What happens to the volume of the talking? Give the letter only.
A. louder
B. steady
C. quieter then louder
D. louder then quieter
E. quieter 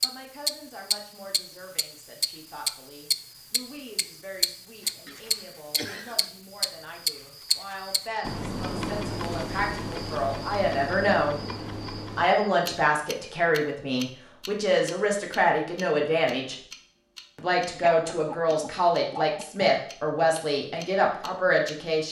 A.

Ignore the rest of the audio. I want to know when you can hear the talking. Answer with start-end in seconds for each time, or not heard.
0.0-11.4, 12.2-16.6, 17.4-22.0.